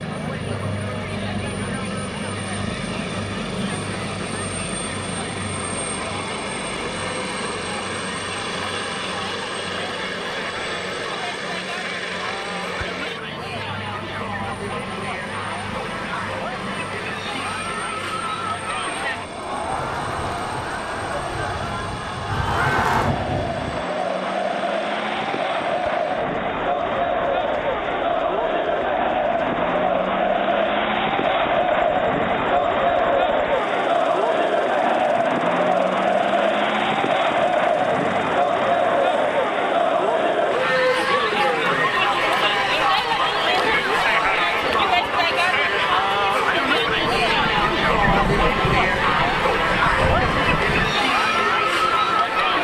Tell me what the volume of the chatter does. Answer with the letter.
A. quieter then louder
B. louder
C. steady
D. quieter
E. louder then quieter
B.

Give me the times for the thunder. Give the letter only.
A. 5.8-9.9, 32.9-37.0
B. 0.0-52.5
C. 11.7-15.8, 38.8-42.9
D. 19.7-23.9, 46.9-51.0
D.